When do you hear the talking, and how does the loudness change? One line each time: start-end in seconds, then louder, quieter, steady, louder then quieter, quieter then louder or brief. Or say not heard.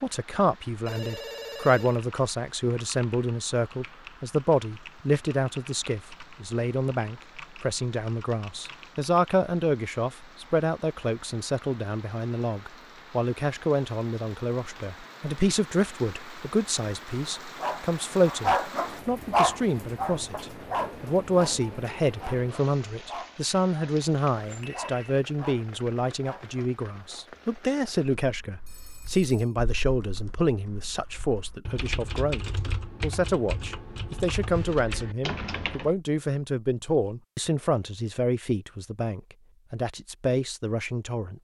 0.0-41.3 steady.